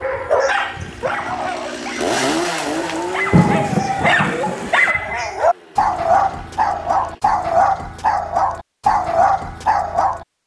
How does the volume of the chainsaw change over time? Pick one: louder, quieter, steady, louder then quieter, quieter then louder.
louder then quieter.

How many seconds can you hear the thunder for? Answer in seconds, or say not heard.
2 s.